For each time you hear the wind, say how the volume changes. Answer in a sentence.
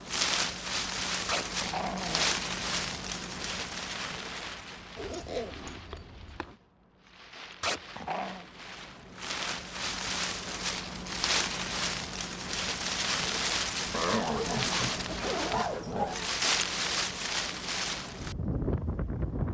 The wind can be heard from 0.0 to 19.4 s, getting quieter then louder.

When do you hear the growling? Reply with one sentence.
The growling can be heard from 1.2 to 2.3 s, from 7.6 to 8.4 s and from 13.9 to 16.3 s.